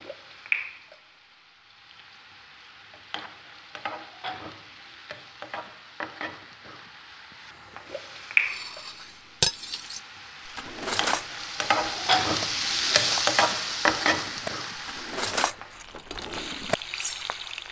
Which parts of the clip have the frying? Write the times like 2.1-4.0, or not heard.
0.0-17.6.